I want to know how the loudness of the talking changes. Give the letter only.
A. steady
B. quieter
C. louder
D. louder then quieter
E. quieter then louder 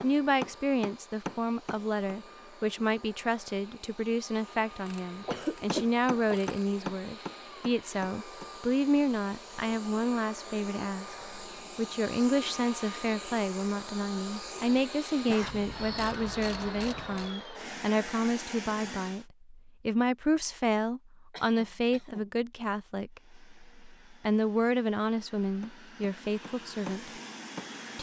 A.